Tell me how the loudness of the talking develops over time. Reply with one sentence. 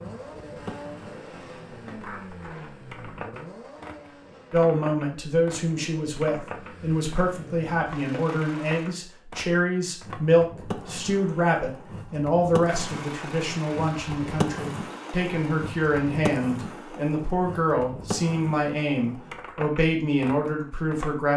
The loudness of the talking stays about the same.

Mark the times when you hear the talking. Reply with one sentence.
The talking can be heard from 4.5 to 21.3 s.